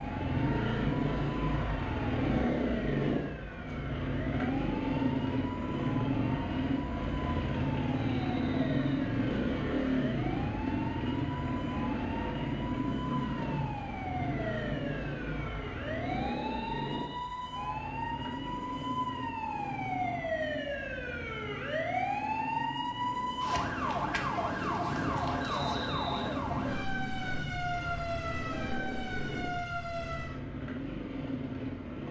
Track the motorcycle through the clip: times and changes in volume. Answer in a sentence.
The motorcycle can be heard from 0.0 to 32.0 s, getting quieter.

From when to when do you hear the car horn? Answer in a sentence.
The car horn can't be heard in this clip.